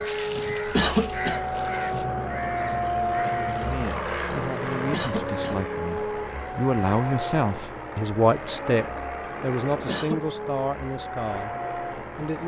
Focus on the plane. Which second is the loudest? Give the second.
3 s.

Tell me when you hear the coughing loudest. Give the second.
1 s.